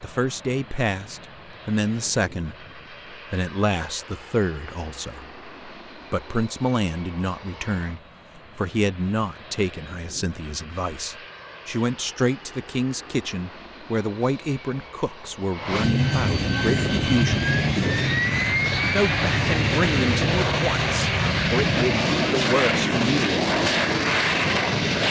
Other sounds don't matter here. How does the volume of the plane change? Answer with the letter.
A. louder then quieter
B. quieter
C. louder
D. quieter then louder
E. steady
C.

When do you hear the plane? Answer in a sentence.
You can hear the plane from 0.0 to 25.0 s.